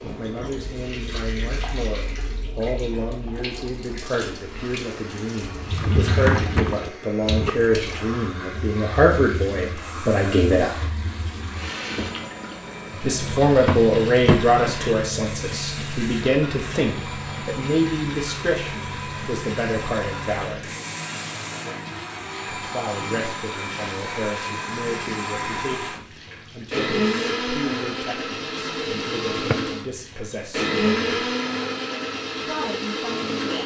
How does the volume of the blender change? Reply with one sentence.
The loudness of the blender goes up.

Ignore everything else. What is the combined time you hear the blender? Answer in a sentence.
You can hear the blender for 29 seconds altogether.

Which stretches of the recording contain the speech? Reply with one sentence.
You can hear the speech from 0.0 to 10.8 s, from 13.0 to 20.7 s, from 22.5 to 31.1 s and from 32.5 to 33.6 s.